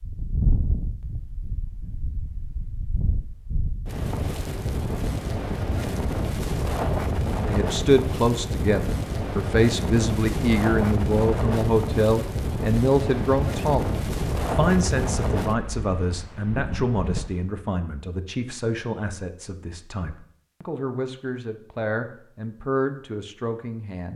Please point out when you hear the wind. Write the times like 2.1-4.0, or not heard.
0.0-17.5.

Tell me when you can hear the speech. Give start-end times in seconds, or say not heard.
7.4-24.1.